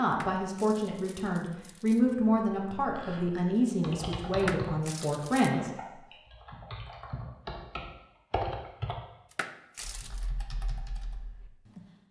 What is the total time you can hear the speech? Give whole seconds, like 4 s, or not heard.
6 s.